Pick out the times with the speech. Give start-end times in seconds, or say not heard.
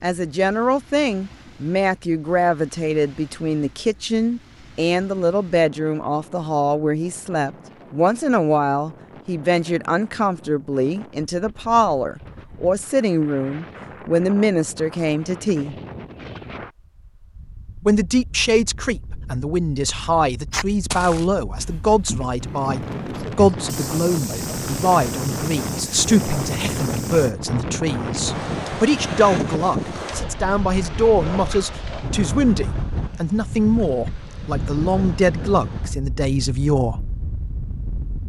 0.0-15.8, 17.8-37.0.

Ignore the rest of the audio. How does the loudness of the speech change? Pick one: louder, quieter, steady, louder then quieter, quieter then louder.
steady.